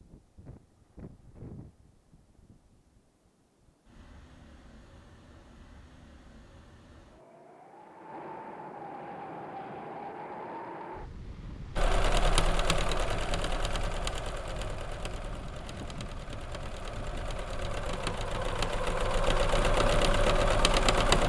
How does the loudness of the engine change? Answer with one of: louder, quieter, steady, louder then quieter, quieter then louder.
quieter then louder.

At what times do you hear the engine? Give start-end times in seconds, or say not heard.
11.8-21.2.